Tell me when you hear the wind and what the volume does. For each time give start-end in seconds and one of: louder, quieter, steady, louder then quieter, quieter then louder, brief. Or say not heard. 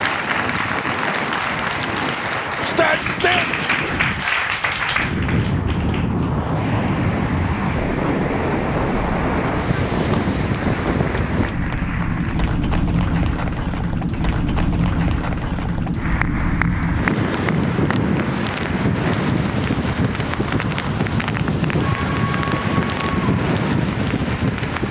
0.0-24.8 louder.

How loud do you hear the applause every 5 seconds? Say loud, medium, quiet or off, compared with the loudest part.
loud, medium, medium, medium, medium.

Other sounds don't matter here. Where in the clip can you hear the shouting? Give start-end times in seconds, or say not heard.
2.6-3.5.